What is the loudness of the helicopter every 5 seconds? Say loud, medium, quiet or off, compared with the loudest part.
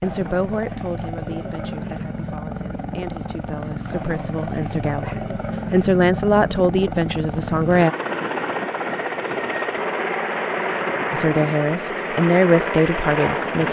medium, loud, loud.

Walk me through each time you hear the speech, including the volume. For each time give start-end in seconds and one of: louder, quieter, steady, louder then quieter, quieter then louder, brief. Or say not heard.
0.0-8.0 quieter then louder
11.1-13.6 brief.